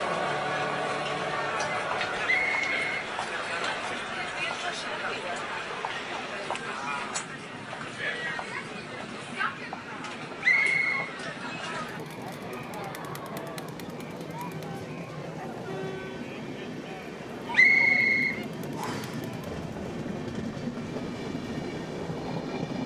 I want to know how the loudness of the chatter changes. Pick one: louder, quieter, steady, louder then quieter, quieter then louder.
quieter.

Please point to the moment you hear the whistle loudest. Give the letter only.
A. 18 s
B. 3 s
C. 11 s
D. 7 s
A.